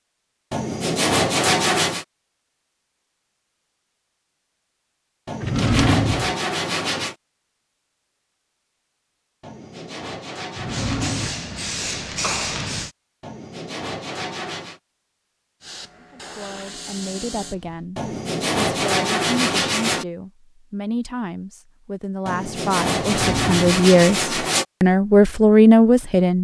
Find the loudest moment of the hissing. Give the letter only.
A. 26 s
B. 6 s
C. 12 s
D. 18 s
C.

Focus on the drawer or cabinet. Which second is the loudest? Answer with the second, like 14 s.
6 s.